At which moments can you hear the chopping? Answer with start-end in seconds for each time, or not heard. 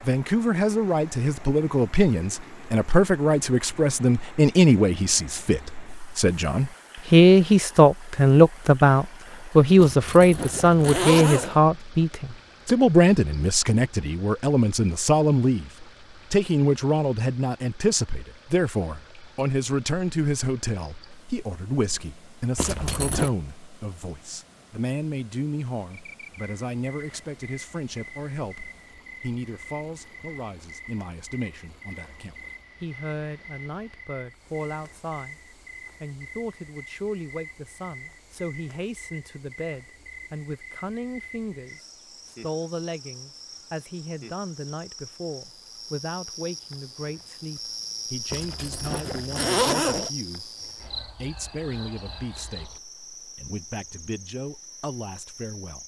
not heard.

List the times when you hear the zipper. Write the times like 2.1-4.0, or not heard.
9.8-11.6, 22.6-23.3, 48.3-50.1.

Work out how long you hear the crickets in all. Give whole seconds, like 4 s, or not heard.
30 s.